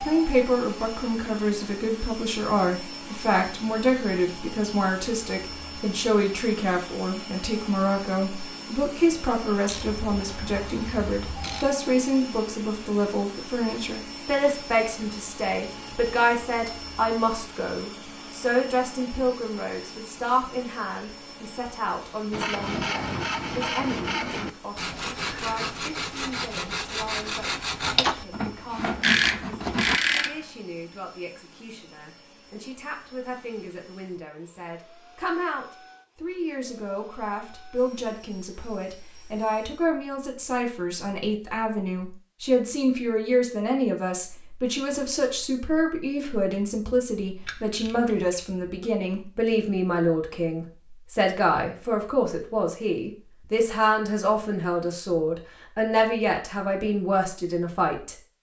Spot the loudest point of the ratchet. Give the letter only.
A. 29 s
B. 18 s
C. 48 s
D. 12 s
A.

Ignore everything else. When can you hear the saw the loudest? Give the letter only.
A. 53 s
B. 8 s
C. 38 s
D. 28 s
D.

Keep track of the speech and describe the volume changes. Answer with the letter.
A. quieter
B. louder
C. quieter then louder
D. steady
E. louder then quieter
C.